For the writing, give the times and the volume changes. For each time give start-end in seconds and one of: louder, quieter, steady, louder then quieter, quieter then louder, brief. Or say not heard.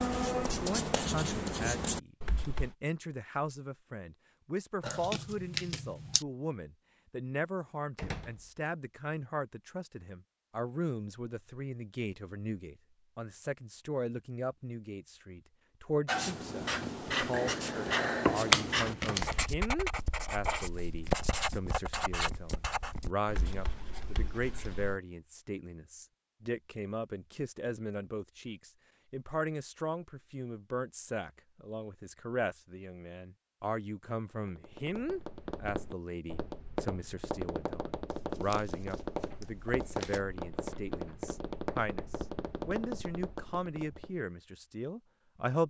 0.0-2.8 brief
16.1-25.0 quieter.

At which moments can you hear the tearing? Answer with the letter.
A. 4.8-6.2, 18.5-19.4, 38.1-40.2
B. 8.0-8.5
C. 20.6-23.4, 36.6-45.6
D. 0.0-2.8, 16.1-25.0
A.